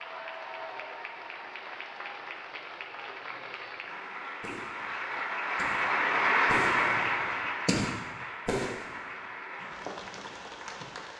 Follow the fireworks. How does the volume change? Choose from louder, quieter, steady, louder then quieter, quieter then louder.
louder then quieter.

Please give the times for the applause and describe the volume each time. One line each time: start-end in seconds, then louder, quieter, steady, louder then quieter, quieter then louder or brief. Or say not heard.
0.0-11.1 louder then quieter.